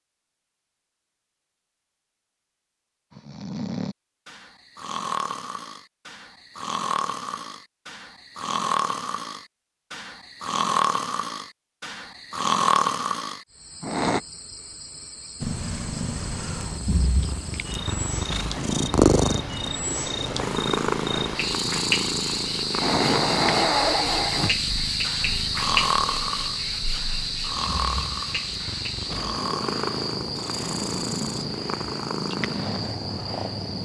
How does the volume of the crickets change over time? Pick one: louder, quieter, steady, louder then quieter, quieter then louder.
louder then quieter.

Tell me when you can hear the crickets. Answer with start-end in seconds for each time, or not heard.
13.5-33.7.